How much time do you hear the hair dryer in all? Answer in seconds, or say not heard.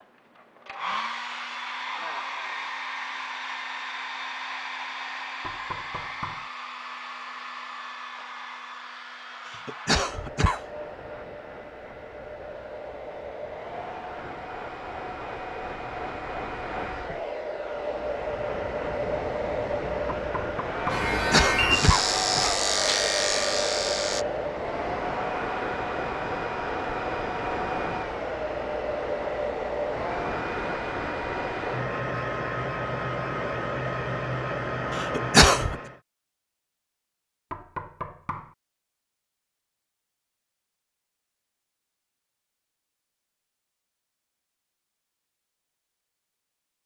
36 s.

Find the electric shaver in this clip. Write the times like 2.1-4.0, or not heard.
20.9-24.2.